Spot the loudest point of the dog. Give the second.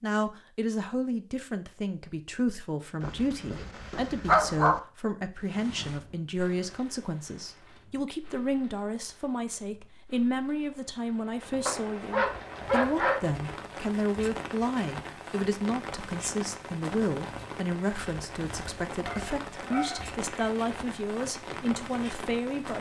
4 s.